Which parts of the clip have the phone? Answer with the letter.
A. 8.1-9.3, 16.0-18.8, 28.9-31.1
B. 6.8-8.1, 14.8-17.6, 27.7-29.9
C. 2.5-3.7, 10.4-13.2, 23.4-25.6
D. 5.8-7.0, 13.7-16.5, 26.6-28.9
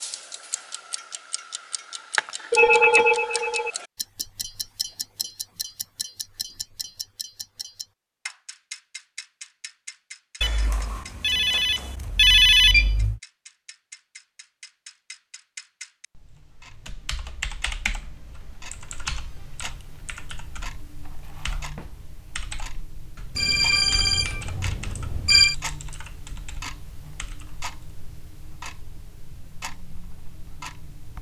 C.